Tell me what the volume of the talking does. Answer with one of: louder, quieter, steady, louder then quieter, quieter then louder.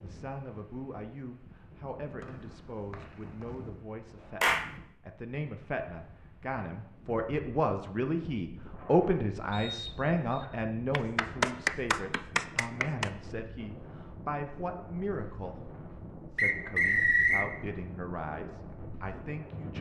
louder then quieter.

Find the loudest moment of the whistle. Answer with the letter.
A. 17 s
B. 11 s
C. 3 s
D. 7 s
A.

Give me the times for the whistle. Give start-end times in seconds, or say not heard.
2.2-3.5, 9.5-10.4, 16.4-17.4.